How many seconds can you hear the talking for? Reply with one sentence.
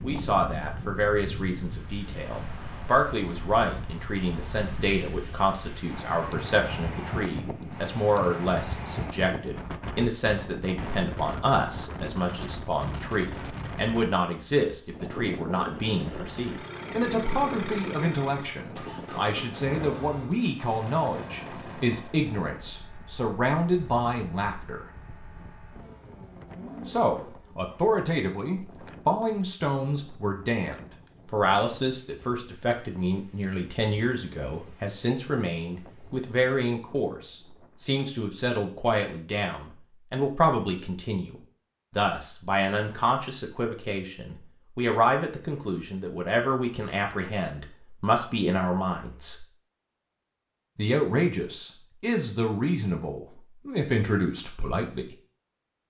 The talking can be heard for 52 seconds in total.